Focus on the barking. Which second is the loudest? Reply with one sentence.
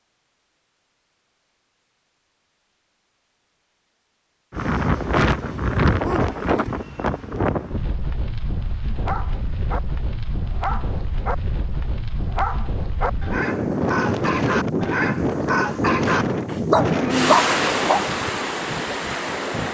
The loudest moment of the barking is at 17 seconds.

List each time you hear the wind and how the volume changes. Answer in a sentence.
You can hear the wind from 4.5 to 19.6 s, getting quieter then louder.